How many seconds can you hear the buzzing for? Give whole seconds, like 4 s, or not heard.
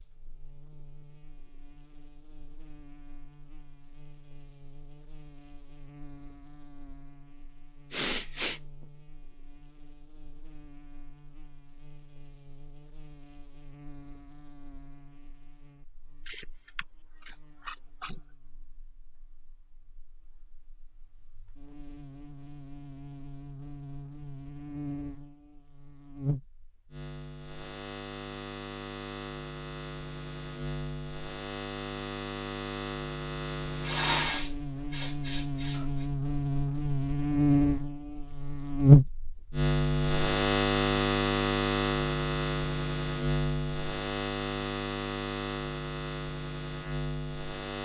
48 s.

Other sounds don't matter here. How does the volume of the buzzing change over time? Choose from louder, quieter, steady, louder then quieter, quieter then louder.
louder.